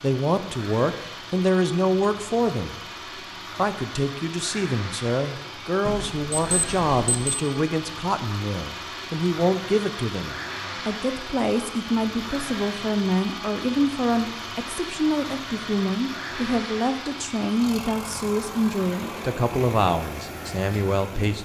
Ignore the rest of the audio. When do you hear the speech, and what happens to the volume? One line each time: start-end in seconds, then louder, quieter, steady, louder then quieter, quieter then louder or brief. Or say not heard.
0.0-2.8 brief
3.5-21.3 steady.